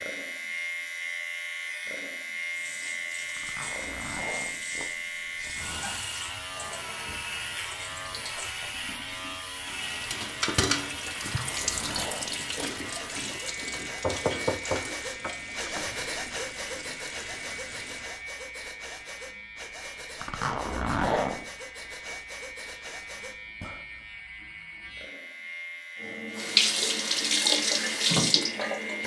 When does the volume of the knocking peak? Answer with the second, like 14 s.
14 s.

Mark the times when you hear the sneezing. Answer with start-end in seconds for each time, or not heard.
not heard.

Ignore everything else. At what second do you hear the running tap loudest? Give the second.
27 s.